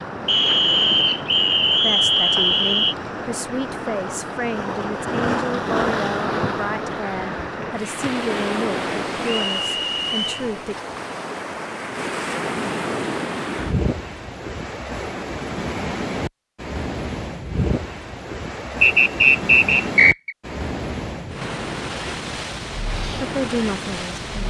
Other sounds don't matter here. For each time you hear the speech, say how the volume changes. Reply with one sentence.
The speech can be heard from 1.8 to 10.8 s, at a steady volume; and briefly from 23.1 to 24.4 s.